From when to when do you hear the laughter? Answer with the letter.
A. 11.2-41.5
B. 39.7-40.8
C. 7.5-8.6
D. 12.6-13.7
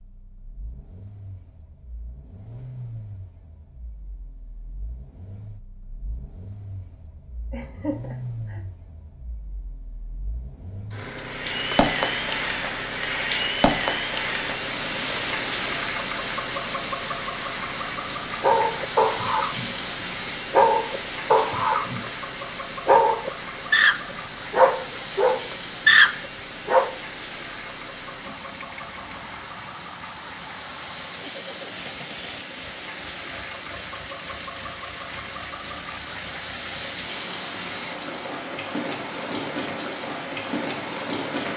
C.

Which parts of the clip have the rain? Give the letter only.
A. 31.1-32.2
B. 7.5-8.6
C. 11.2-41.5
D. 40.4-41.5
C.